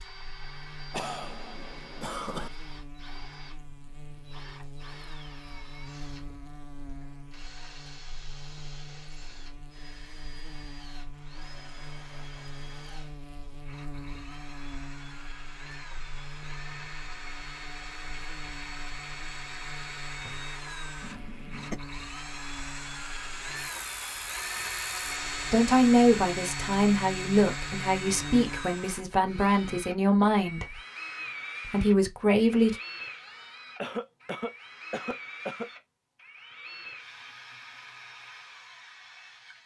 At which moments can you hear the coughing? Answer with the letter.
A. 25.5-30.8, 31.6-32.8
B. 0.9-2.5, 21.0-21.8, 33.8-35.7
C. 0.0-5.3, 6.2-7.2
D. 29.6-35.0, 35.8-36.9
B.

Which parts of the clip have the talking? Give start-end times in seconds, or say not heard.
25.5-30.8, 31.6-32.8.